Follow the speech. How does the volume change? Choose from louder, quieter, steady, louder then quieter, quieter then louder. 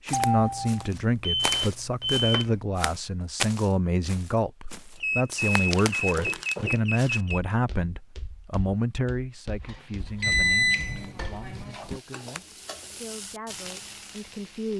quieter.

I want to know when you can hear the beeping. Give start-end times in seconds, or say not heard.
0.1-2.5, 5.0-7.4, 10.2-11.9.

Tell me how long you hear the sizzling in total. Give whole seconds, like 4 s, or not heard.
5 s.